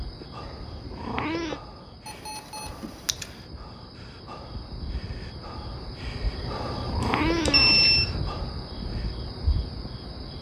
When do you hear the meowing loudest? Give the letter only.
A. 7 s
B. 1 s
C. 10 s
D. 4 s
A.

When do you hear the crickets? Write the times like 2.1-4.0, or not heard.
0.0-10.3.